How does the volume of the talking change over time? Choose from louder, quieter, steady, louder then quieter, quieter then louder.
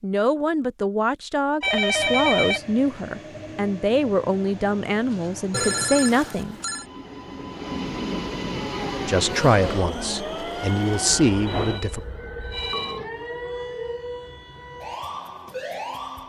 steady.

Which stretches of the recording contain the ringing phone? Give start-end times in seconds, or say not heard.
1.6-2.6, 5.5-6.8, 11.4-13.0.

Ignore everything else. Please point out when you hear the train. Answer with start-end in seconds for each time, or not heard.
1.9-11.8.